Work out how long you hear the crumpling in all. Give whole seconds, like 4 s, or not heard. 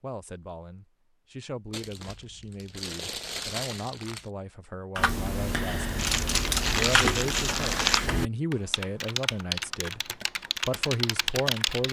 5 s.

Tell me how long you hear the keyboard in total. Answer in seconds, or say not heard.
7 s.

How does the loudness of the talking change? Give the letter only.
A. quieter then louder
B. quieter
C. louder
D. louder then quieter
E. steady
C.